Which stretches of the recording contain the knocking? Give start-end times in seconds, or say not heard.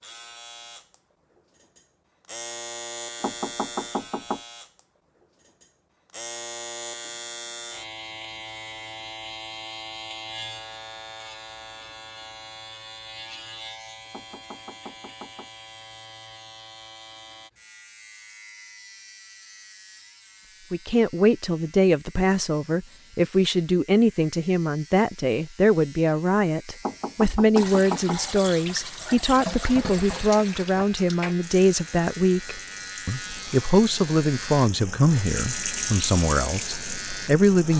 3.2-4.4, 14.1-15.5, 26.8-28.2.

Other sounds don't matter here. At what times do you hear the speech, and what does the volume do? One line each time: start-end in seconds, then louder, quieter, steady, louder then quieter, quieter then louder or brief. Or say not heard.
20.7-37.7 steady.